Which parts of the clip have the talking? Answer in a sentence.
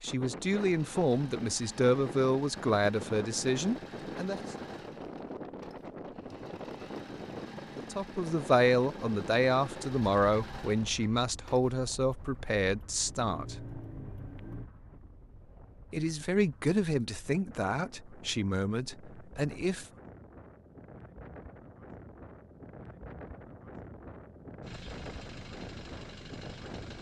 You can hear the talking from 0.0 to 4.5 s, from 7.8 to 13.6 s and from 15.9 to 19.9 s.